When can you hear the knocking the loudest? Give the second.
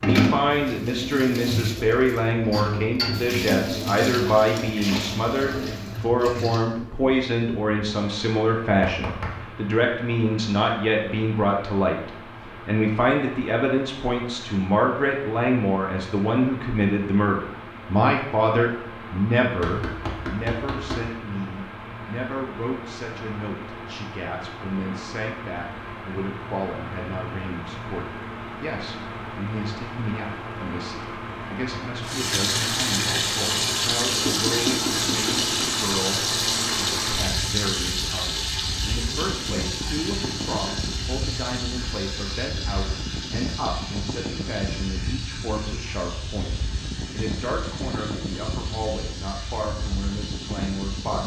35 s.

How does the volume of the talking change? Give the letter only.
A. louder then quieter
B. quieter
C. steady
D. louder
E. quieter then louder
B.